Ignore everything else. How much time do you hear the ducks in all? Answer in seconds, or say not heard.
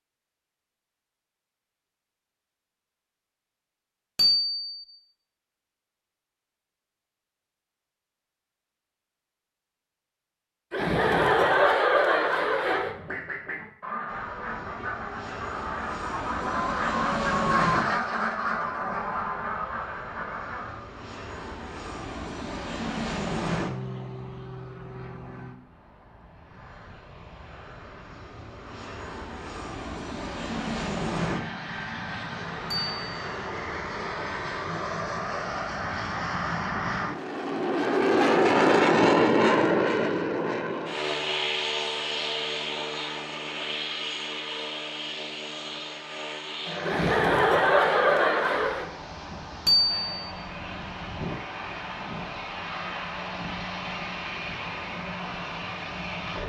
8 s.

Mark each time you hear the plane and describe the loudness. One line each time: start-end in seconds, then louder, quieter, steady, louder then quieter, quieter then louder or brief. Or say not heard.
14.1-56.4 louder then quieter.